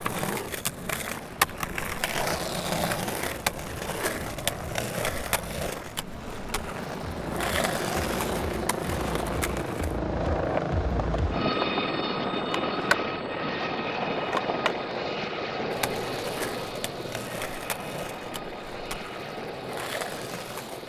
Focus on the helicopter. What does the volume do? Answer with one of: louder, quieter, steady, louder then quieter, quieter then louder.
louder then quieter.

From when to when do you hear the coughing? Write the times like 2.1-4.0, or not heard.
not heard.